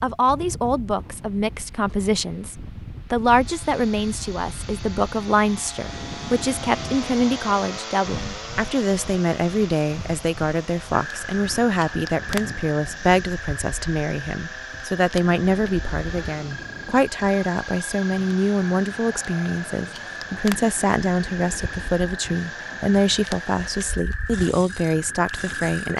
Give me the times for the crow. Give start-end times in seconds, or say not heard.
not heard.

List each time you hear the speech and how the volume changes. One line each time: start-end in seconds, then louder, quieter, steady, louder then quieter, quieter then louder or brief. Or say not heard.
0.0-25.9 steady.